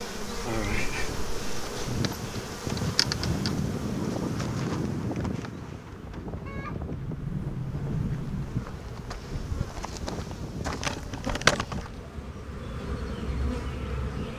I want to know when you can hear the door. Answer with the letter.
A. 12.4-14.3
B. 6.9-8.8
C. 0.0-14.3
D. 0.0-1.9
B.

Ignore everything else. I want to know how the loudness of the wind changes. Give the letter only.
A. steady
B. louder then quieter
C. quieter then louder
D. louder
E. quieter
E.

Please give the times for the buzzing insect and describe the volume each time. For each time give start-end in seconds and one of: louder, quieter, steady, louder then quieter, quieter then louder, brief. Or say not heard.
0.0-14.3 quieter then louder.